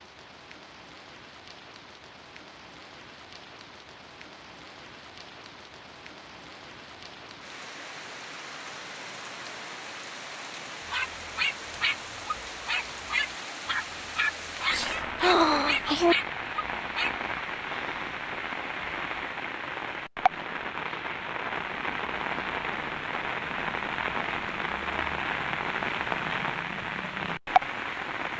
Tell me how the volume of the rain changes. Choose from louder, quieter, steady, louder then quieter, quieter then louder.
louder.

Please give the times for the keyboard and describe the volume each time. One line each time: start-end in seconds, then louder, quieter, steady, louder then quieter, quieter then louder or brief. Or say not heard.
not heard.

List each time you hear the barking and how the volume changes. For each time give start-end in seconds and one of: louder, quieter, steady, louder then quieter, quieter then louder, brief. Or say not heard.
10.9-17.1 steady.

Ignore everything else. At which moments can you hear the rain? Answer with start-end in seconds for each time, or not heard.
0.0-28.3.